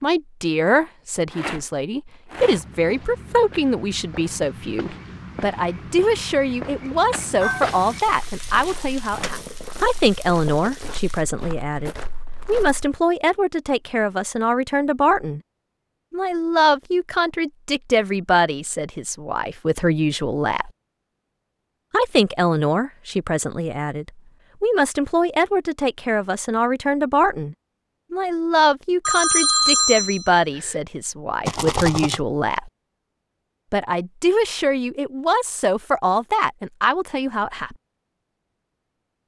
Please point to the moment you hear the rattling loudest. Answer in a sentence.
The volume of the rattling peaks at 32 seconds.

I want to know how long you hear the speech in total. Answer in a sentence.
You can hear the speech for 35 seconds altogether.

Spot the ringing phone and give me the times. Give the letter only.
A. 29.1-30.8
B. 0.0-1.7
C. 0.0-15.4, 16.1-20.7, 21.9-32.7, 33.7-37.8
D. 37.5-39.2
A.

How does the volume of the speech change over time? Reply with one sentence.
The volume of the speech stays about the same.